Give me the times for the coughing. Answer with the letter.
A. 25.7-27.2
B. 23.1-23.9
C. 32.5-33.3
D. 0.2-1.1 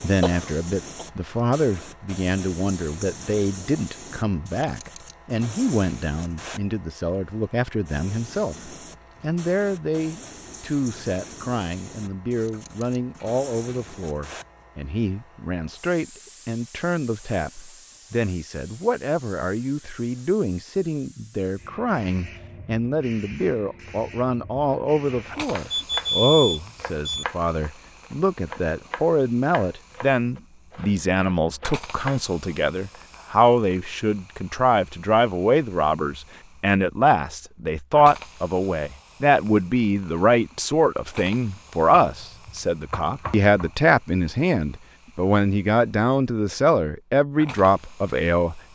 D.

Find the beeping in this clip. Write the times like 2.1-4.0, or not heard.
25.7-27.2.